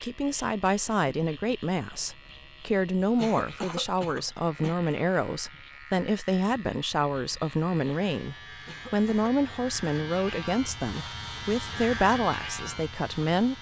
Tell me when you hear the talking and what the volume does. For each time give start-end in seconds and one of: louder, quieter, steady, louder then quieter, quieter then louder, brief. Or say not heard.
0.0-13.5 steady.